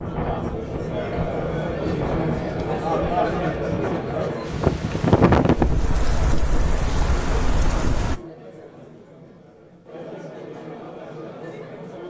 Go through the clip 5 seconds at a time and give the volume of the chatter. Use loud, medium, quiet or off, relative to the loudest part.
loud, quiet, medium.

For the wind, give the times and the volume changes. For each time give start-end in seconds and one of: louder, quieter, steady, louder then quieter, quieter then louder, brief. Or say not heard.
0.0-8.2 louder then quieter.